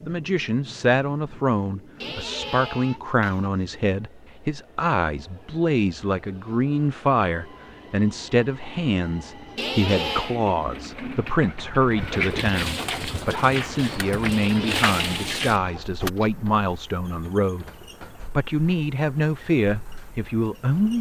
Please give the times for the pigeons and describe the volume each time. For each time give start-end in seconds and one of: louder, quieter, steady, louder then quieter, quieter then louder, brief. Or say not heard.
9.8-16.1 louder.